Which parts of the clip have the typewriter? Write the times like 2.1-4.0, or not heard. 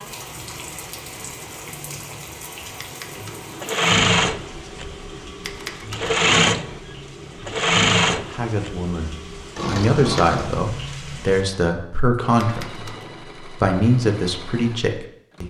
2.8-3.6, 5.4-6.2, 12.4-13.2.